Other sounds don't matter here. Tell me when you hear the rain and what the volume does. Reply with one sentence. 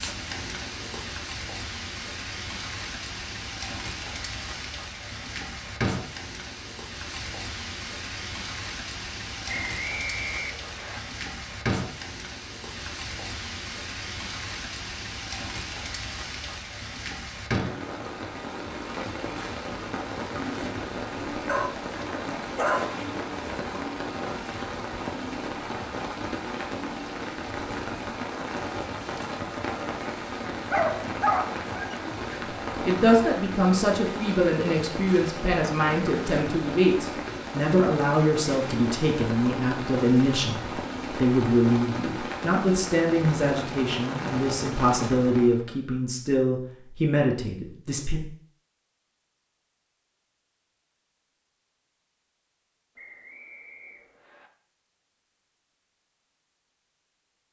The rain can be heard from 0.0 to 45.6 s, at a steady volume.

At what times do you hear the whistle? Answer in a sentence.
You can hear the whistle from 9.4 to 11.0 s and from 53.0 to 54.5 s.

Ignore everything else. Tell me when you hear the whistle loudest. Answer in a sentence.
The volume of the whistle peaks at 10 seconds.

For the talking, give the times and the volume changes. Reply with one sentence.
You can hear the talking from 32.4 to 48.2 s, at a steady volume.